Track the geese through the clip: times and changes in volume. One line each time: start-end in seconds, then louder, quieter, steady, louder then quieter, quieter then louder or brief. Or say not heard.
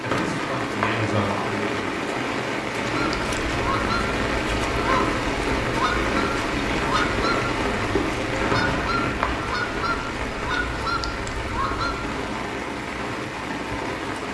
2.9-12.2 steady.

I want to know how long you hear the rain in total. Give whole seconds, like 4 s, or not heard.
14 s.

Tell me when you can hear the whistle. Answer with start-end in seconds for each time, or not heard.
0.1-1.5, 8.4-9.4.